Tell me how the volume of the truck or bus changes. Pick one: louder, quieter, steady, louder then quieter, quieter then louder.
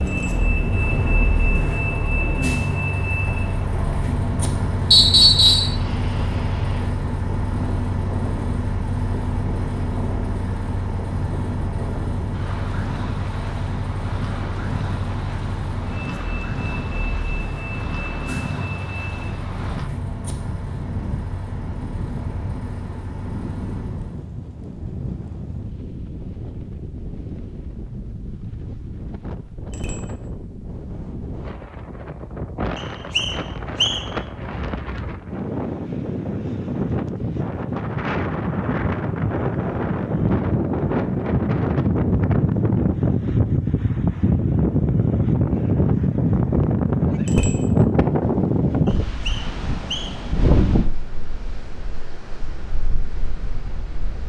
quieter.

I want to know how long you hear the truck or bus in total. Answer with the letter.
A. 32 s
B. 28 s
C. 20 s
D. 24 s
D.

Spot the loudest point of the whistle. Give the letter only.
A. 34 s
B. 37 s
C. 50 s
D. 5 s
D.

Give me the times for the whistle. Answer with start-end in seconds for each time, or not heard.
4.9-5.8, 32.8-34.0, 48.9-50.1.